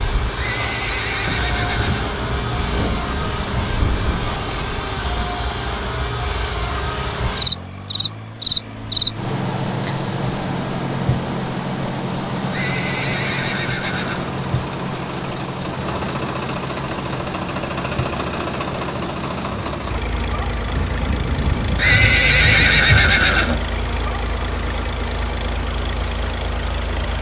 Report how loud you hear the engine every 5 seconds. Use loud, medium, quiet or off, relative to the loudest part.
medium, medium, loud, loud, loud, loud.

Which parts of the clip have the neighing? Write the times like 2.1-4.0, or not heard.
0.3-2.1, 12.5-14.3, 21.8-23.6.